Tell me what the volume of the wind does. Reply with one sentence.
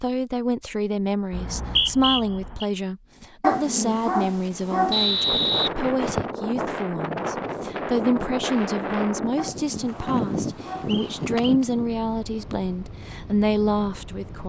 The volume of the wind goes down.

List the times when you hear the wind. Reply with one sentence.
You can hear the wind from 5.2 to 14.4 s.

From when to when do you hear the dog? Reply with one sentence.
The dog can be heard from 3.4 to 5.0 s and from 9.3 to 11.0 s.